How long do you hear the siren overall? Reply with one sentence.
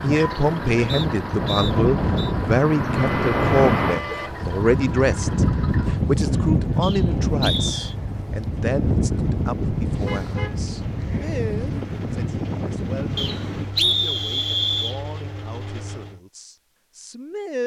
The siren can't be heard in this clip.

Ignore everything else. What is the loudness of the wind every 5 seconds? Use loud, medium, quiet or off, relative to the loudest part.
loud, loud, medium, off.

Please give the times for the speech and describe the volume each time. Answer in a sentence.
You can hear the speech from 0.0 to 17.6 s, getting quieter.